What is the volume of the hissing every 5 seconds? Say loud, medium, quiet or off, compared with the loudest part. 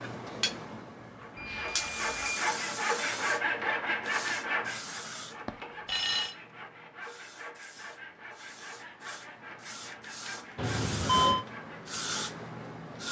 loud, medium, loud.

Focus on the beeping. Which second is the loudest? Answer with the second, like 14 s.
11 s.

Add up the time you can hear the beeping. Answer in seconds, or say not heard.
3 s.